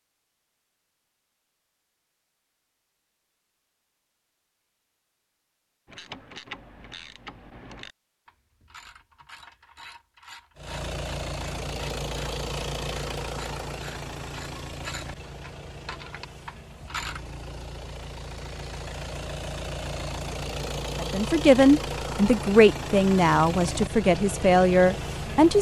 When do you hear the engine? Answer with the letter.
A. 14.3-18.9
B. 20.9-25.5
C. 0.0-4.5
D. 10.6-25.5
D.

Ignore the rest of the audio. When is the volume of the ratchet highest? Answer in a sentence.
The volume of the ratchet peaks at 17 seconds.